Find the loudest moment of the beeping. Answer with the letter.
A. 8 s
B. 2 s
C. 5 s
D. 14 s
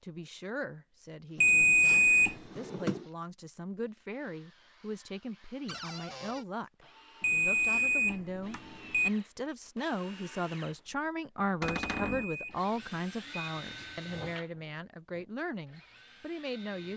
B.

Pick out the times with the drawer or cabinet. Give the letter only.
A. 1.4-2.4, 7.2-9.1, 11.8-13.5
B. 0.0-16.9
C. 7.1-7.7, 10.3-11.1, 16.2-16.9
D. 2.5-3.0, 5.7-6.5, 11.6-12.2
D.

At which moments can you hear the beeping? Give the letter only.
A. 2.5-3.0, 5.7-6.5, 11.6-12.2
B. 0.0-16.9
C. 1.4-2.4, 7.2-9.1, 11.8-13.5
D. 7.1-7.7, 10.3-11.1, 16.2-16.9
C.